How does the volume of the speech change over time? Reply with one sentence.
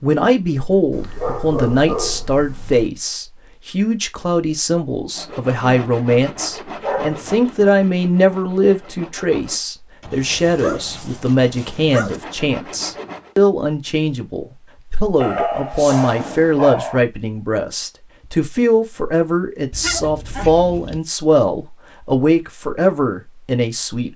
The loudness of the speech stays about the same.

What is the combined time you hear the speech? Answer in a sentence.
You can hear the speech for 24 seconds altogether.